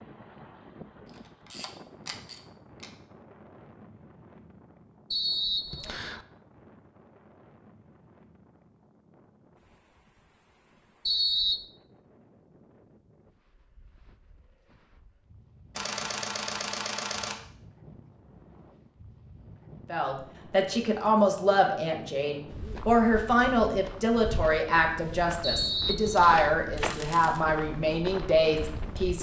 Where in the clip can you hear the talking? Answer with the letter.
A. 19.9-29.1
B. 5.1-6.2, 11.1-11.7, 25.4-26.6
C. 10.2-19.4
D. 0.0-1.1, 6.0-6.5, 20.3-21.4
A.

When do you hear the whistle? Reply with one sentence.
The whistle can be heard from 5.1 to 6.2 s, from 11.1 to 11.7 s and from 25.4 to 26.6 s.